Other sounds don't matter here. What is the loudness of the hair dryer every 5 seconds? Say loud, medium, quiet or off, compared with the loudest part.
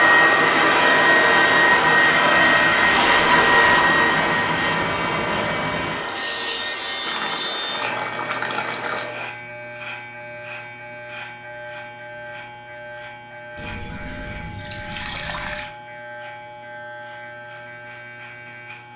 loud, quiet, off, off.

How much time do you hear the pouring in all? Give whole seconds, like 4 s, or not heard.
5 s.